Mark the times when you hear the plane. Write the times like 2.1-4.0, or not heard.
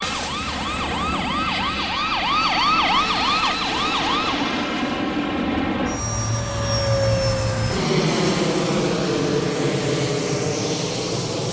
0.0-11.4.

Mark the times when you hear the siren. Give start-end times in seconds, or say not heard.
0.0-4.5.